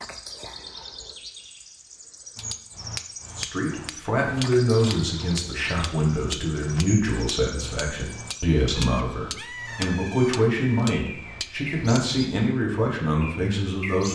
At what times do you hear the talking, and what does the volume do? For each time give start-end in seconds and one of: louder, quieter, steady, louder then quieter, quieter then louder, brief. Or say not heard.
3.4-14.1 steady.